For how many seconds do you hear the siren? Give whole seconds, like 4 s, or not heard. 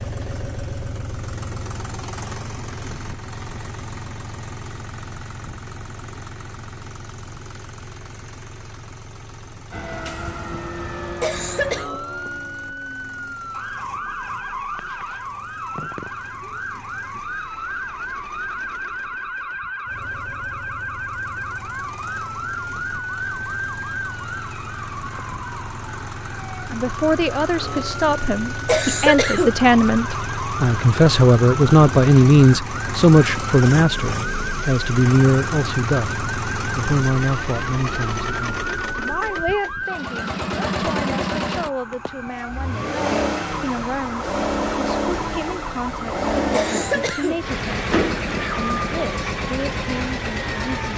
41 s.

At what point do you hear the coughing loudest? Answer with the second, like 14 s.
29 s.